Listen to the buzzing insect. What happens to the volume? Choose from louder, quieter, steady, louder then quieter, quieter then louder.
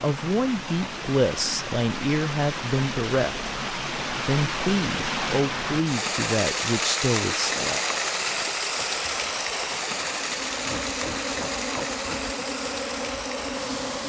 louder.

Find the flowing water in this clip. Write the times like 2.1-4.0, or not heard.
0.0-14.0.